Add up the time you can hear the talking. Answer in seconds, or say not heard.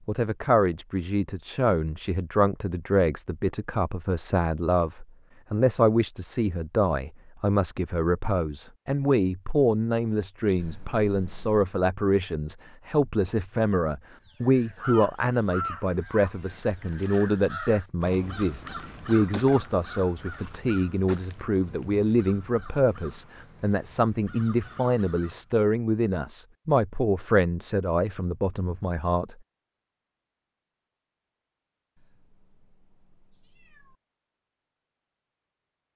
29 s.